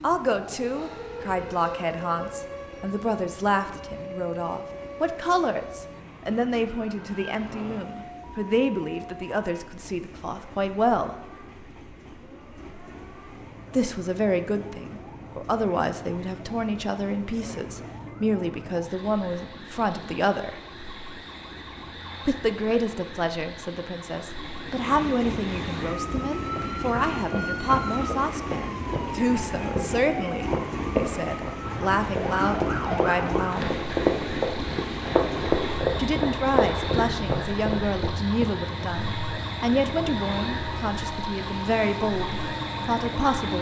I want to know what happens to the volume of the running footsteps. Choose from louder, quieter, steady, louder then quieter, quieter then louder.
louder.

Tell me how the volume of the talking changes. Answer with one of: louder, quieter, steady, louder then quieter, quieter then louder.
steady.